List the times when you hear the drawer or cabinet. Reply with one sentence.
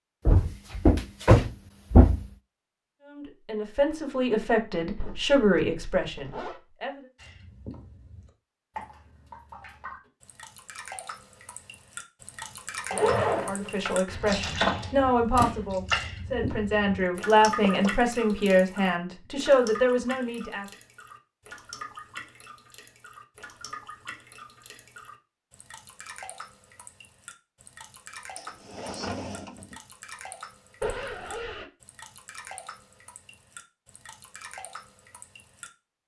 You can hear the drawer or cabinet from 0.2 to 2.2 s, from 17.6 to 18.6 s and from 28.4 to 29.8 s.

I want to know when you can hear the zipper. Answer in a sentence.
The zipper can be heard from 5.0 to 6.6 s, from 12.9 to 13.9 s and from 30.8 to 31.7 s.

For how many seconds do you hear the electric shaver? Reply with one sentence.
You can't hear the electric shaver here.